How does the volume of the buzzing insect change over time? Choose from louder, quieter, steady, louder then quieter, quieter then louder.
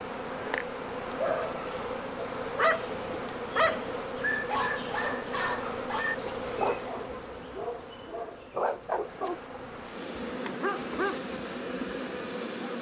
quieter then louder.